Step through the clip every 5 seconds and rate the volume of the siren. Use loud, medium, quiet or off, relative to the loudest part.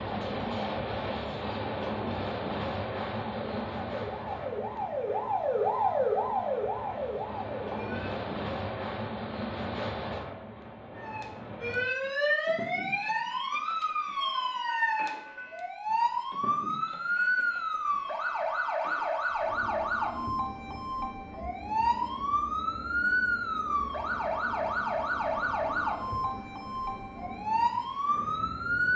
medium, loud, loud, loud, loud, loud.